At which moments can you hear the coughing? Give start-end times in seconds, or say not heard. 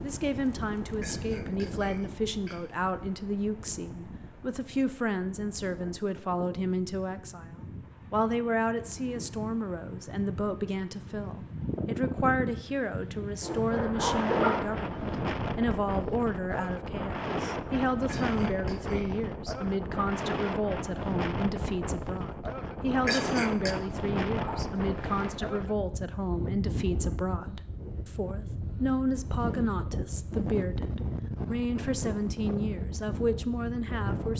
1.0-2.6, 18.1-19.1, 23.1-23.8.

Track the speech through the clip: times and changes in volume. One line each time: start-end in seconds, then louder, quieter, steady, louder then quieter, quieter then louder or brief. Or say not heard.
0.0-34.3 steady.